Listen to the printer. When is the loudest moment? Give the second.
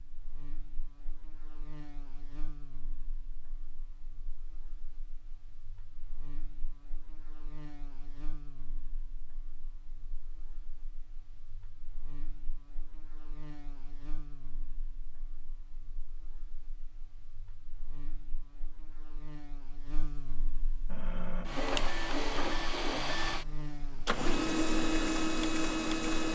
25 s.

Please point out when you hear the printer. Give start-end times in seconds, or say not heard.
20.9-26.3.